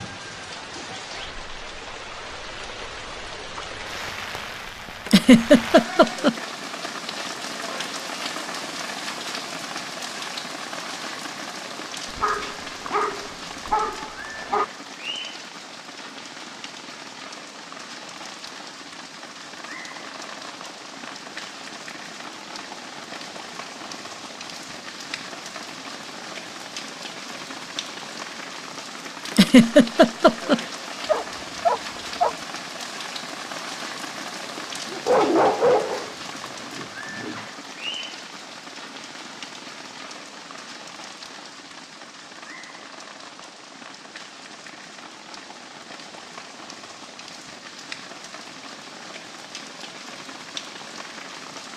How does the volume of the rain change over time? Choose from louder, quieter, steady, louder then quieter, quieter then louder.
quieter.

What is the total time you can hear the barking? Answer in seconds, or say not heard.
6 s.